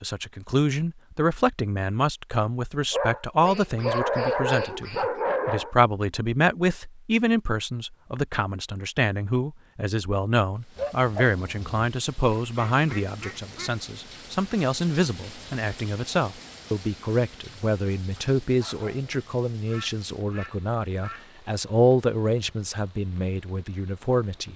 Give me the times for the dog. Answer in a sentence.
You can hear the dog from 2.9 to 5.8 s, from 10.8 to 11.8 s and from 18.1 to 19.2 s.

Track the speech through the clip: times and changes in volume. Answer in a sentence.
The speech can be heard from 0.0 to 24.5 s, at a steady volume.